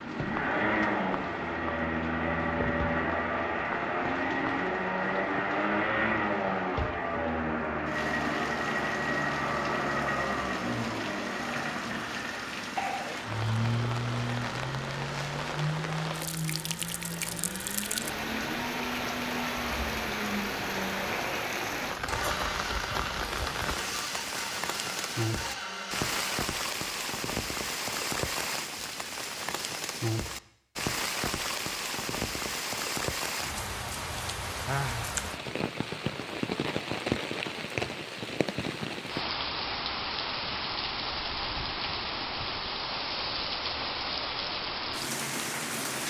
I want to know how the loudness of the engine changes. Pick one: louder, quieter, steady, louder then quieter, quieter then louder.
quieter.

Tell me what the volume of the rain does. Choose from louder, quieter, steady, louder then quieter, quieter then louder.
louder.